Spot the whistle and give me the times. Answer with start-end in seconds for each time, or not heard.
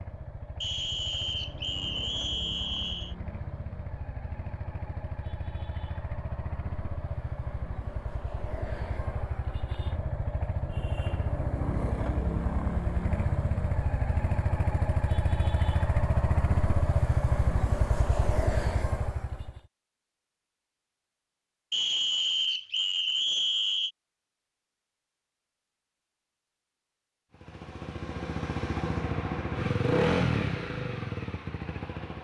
0.6-3.1, 21.7-23.9.